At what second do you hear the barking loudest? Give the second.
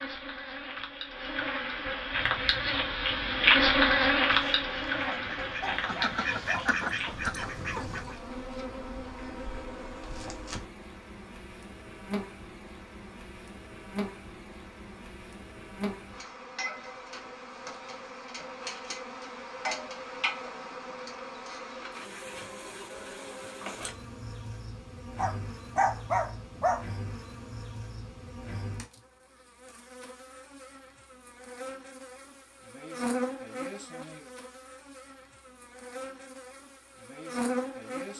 26 s.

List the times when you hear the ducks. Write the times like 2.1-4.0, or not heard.
2.1-8.2.